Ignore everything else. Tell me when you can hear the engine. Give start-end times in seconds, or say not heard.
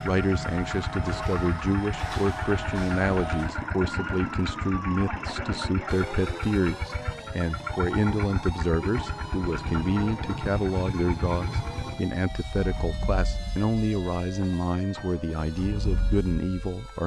0.0-17.0.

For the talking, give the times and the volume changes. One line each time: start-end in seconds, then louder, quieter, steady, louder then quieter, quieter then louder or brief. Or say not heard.
0.0-17.0 steady.